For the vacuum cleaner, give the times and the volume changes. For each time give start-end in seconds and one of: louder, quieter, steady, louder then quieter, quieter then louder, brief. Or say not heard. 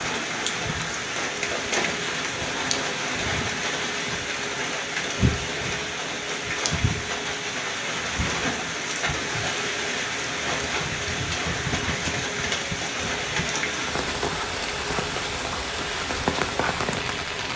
0.0-17.5 steady.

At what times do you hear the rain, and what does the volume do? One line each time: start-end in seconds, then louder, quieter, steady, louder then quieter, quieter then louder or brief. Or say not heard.
0.0-17.5 steady.